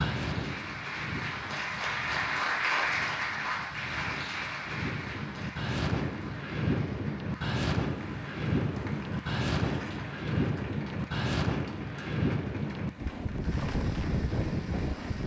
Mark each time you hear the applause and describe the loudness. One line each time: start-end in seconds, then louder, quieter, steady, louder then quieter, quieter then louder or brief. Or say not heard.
0.0-15.2 quieter.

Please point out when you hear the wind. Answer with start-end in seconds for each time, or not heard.
0.0-15.2.